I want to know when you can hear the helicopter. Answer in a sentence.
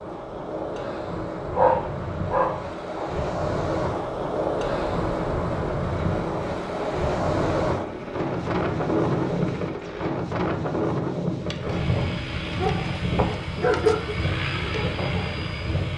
The helicopter can be heard from 4.8 to 10.1 s and from 11.6 to 15.9 s.